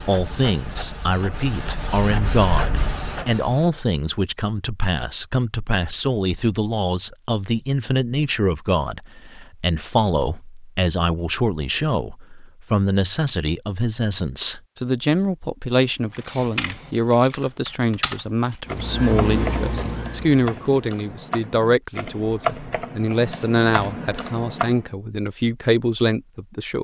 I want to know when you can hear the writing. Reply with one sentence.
The writing can't be heard in this clip.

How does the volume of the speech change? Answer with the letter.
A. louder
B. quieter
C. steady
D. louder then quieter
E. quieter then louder
C.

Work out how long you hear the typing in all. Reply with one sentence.
The typing can be heard for 9 seconds in total.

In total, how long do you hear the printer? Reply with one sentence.
The printer can be heard for 6 seconds in total.